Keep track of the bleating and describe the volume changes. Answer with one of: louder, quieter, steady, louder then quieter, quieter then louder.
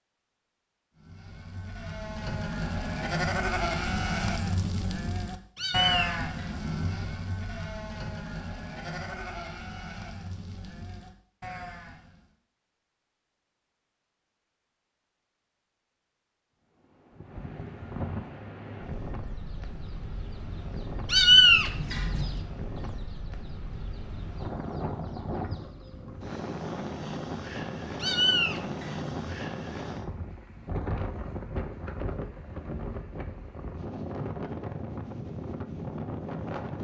quieter.